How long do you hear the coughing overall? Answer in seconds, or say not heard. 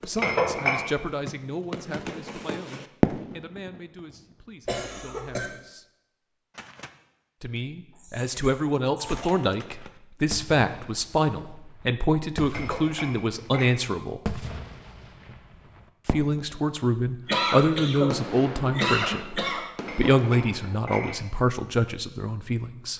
5 s.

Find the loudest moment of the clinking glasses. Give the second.
1 s.